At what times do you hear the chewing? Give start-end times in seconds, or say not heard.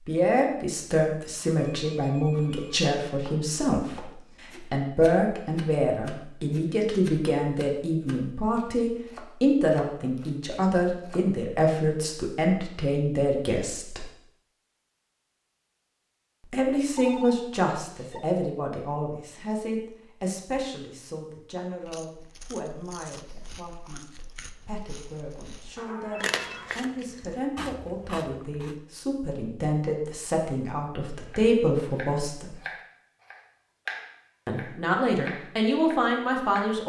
21.8-28.8.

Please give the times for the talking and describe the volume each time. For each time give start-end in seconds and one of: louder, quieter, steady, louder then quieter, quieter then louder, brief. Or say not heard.
0.1-14.1 steady
16.5-32.5 quieter then louder
34.5-36.8 brief.